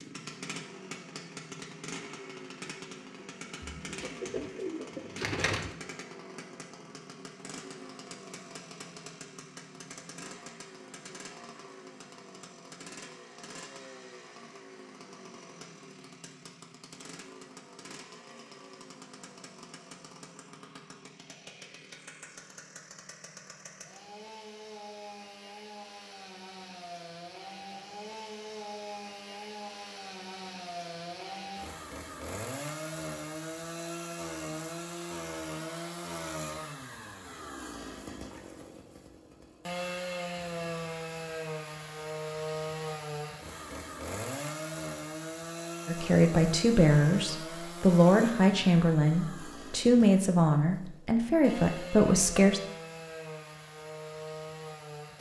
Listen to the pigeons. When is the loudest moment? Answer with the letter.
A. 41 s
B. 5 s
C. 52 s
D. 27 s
B.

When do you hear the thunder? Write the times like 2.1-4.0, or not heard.
not heard.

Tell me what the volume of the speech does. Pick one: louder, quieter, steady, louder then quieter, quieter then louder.
steady.